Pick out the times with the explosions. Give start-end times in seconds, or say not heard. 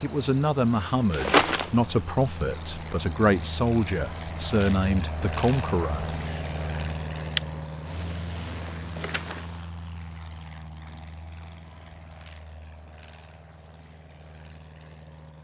not heard.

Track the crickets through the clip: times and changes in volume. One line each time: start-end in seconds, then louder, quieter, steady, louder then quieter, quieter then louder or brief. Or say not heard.
0.0-15.3 quieter.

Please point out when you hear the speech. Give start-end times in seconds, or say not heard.
0.0-6.4.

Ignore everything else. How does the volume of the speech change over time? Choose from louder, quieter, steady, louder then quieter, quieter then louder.
steady.